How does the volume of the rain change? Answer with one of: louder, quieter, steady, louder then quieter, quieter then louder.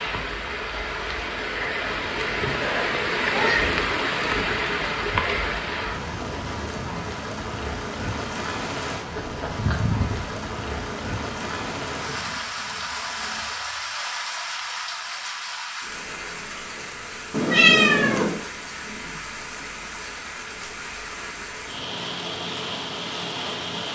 quieter.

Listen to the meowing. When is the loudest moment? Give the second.
18 s.